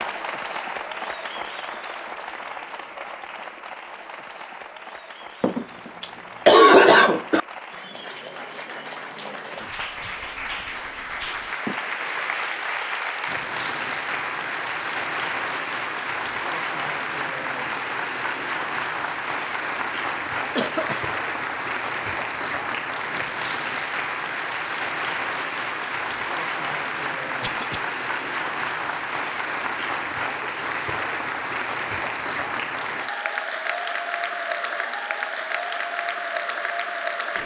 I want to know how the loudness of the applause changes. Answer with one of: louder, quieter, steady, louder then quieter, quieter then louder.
louder.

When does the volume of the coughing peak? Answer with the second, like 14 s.
7 s.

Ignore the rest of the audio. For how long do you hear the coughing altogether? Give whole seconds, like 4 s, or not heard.
3 s.